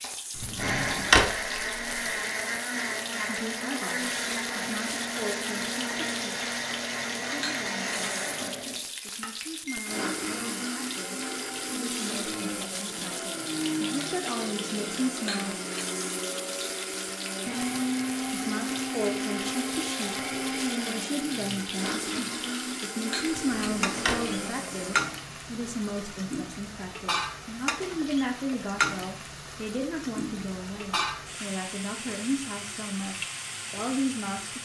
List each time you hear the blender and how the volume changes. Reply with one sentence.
The blender can be heard from 0.0 to 25.1 s, at a steady volume.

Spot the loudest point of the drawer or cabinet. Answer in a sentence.
The loudest moment of the drawer or cabinet is at 1 second.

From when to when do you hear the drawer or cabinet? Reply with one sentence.
You can hear the drawer or cabinet from 0.3 to 2.0 s and from 23.2 to 24.4 s.